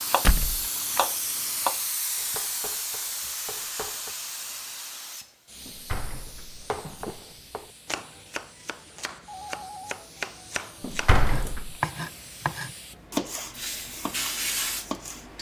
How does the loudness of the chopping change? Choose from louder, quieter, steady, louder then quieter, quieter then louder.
quieter then louder.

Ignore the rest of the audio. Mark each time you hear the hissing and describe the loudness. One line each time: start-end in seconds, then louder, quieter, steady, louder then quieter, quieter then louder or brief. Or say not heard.
0.0-15.3 quieter then louder.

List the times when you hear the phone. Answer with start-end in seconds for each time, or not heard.
9.2-10.0.